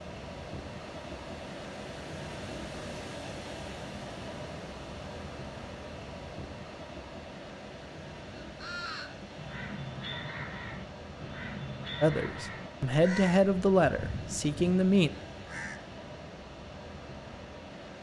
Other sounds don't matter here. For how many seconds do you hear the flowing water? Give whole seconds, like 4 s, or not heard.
18 s.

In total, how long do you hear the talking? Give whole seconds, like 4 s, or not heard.
3 s.